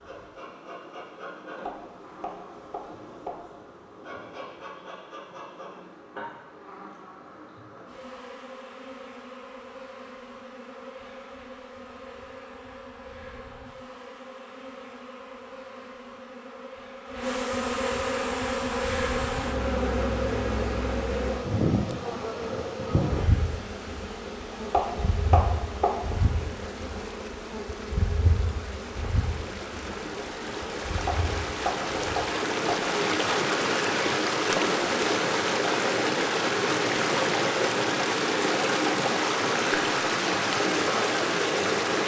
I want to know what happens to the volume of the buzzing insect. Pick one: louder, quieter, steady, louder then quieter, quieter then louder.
louder then quieter.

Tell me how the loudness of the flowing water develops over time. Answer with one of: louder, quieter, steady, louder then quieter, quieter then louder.
louder.